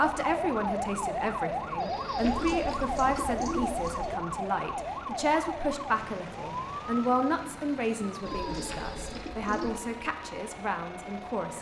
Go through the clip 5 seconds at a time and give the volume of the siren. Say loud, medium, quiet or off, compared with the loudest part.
loud, medium, quiet.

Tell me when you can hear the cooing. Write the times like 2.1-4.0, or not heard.
2.1-4.2, 8.2-9.8.